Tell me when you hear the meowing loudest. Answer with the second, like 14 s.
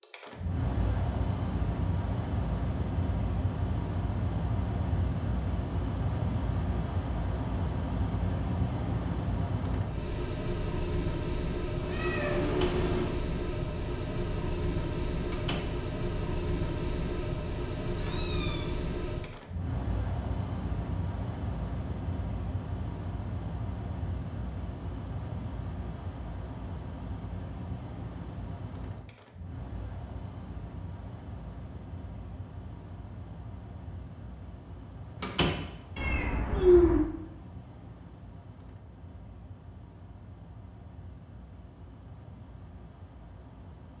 37 s.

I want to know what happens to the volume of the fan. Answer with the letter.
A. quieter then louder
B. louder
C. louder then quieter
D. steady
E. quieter
E.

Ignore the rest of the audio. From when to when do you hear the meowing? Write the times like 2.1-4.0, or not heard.
11.8-13.2, 17.8-18.6, 36.0-37.0.